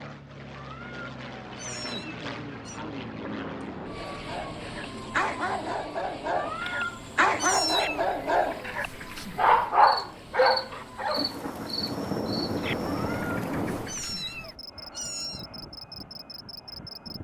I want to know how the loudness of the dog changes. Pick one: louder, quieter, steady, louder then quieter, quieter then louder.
louder.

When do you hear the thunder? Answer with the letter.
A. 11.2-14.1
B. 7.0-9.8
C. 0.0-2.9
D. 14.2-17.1
A.